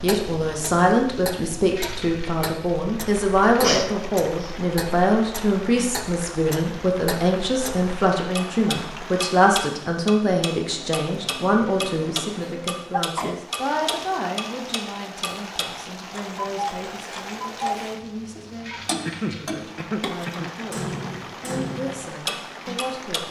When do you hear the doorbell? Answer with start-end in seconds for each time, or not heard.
not heard.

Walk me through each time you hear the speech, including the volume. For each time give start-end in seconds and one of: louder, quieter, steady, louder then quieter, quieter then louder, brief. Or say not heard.
0.0-23.2 quieter.